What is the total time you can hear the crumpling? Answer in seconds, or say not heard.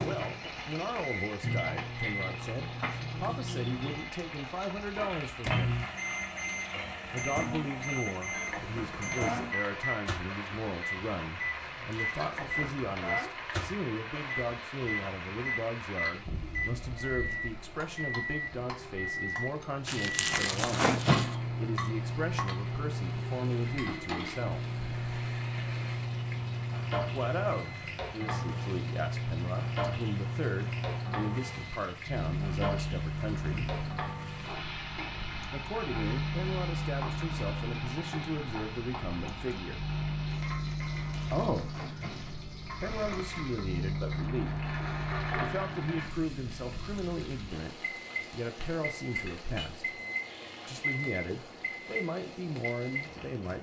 4 s.